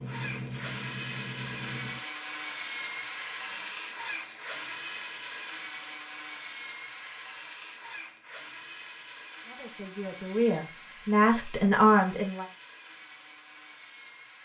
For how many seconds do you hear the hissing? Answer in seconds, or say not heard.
6 s.